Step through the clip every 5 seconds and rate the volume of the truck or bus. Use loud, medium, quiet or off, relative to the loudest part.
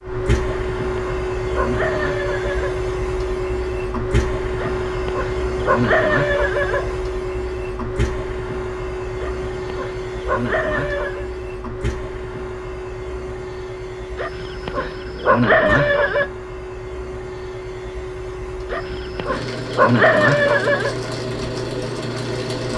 loud, loud, medium, medium, loud.